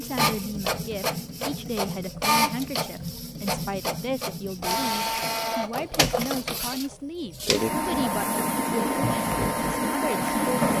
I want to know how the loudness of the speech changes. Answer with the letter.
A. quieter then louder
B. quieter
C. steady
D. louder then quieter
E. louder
C.